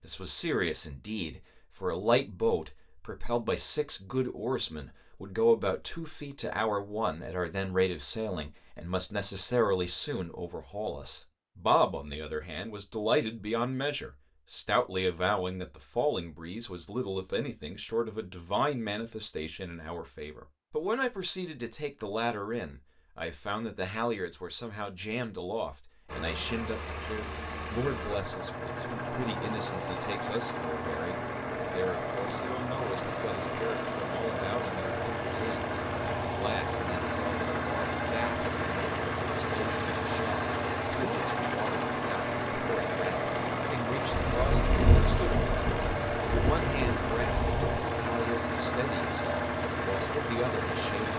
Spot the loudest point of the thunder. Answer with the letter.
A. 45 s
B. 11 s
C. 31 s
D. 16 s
A.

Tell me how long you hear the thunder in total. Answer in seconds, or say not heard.
4 s.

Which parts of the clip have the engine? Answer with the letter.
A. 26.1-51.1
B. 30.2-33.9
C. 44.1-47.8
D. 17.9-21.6
A.